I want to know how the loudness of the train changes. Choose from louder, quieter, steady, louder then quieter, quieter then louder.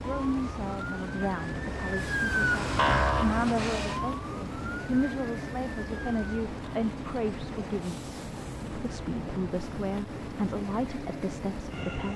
steady.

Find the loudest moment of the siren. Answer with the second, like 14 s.
3 s.